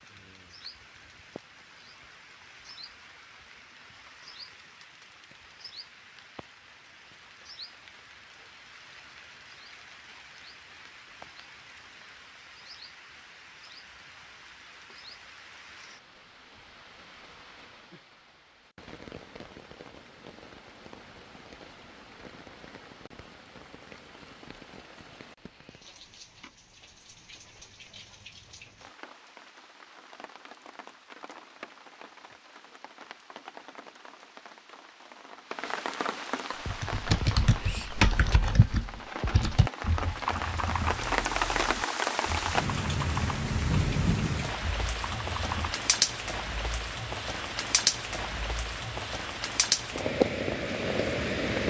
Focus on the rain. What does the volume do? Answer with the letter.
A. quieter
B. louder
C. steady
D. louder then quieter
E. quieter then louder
B.